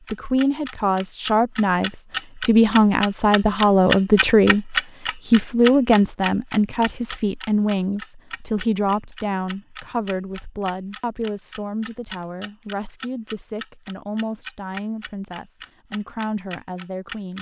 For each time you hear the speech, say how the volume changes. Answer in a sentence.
You can hear the speech from 0.1 to 17.3 s, getting quieter.